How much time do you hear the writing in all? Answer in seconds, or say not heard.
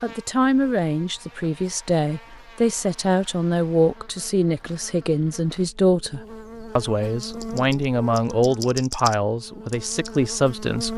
not heard.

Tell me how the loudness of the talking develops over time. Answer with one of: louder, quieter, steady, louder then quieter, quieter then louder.
steady.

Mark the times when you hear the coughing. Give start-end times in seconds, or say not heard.
not heard.